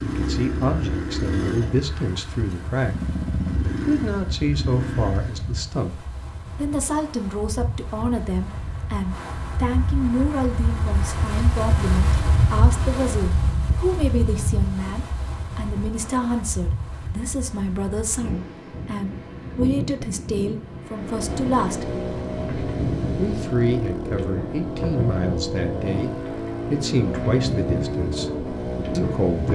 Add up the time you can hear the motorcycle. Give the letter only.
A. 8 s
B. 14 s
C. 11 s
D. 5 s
B.